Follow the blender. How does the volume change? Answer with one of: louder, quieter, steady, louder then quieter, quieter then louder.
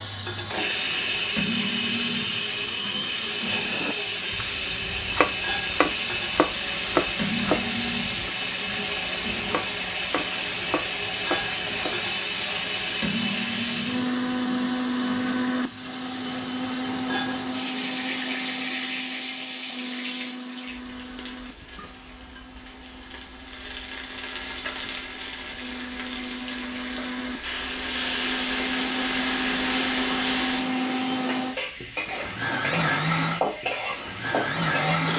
quieter then louder.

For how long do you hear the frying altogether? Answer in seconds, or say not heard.
35 s.